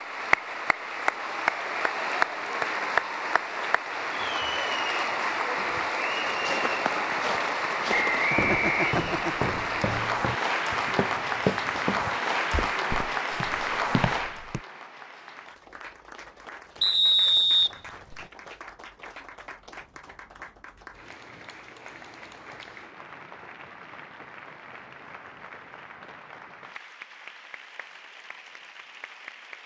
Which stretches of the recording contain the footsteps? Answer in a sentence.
You can hear the footsteps from 5.5 to 14.6 s.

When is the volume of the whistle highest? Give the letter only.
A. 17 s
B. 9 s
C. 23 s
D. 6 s
A.